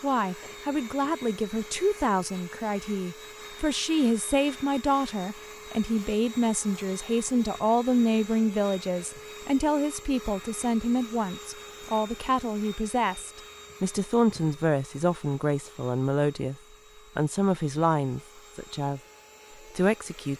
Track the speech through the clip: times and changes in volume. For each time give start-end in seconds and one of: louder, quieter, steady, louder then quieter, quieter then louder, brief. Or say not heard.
0.0-16.6 steady
17.1-19.0 brief
19.8-20.3 brief.